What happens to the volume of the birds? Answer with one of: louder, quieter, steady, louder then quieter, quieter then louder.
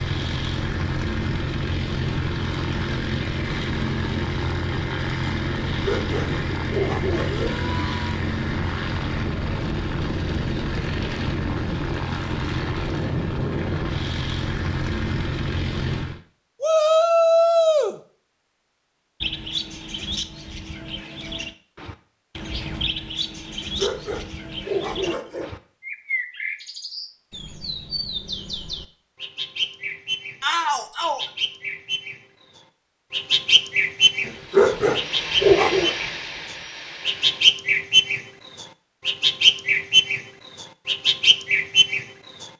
louder.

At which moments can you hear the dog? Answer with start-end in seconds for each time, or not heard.
5.8-7.5, 23.5-25.5, 34.2-36.0.